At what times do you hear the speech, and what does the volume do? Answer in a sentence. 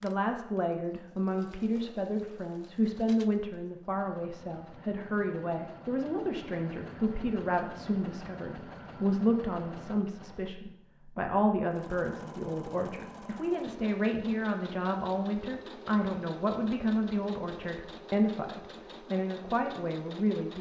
You can hear the speech from 0.0 to 20.5 s, at a steady volume.